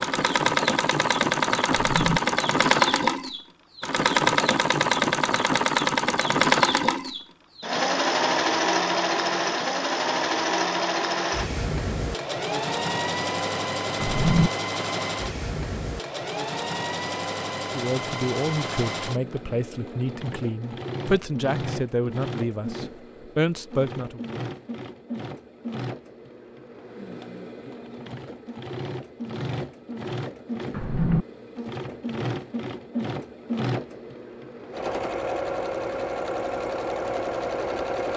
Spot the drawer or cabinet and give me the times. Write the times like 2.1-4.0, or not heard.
1.7-2.2, 14.0-14.5, 30.7-31.2.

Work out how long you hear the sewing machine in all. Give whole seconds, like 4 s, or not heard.
38 s.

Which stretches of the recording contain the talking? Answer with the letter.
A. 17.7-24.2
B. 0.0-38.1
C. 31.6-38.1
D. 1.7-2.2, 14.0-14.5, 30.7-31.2
A.